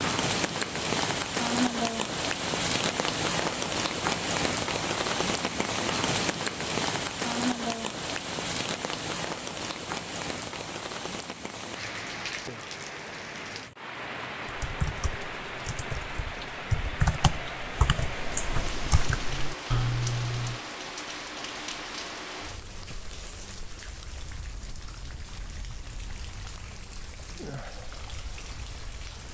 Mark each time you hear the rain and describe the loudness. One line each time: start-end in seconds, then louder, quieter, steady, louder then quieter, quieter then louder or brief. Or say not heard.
0.0-29.2 quieter.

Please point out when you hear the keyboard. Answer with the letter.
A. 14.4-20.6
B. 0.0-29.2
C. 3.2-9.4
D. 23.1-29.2
A.